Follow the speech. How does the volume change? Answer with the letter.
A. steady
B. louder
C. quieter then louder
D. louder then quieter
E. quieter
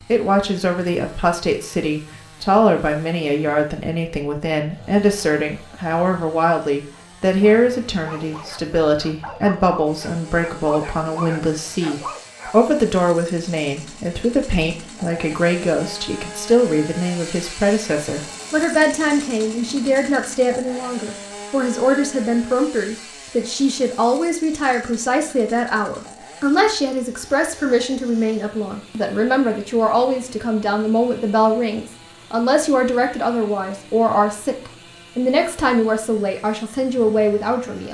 A.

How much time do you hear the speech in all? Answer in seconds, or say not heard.
38 s.